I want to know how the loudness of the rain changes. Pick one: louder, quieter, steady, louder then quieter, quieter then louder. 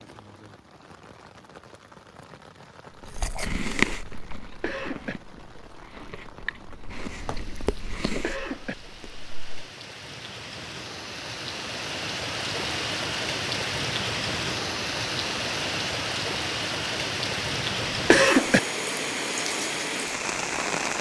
louder.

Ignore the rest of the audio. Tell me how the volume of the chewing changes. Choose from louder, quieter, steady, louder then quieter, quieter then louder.
quieter then louder.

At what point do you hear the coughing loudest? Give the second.
18 s.